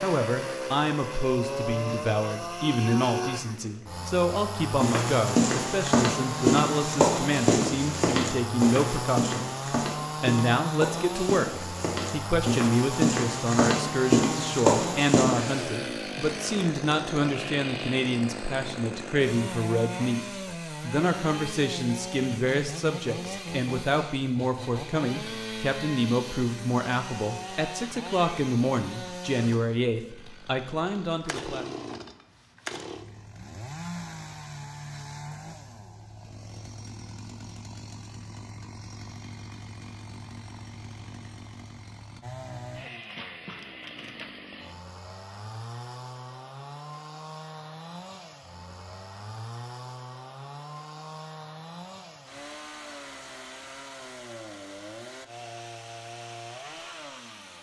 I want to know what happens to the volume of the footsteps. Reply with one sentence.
The volume of the footsteps goes down, then up.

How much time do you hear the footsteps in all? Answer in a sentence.
The footsteps can be heard for 11 seconds in total.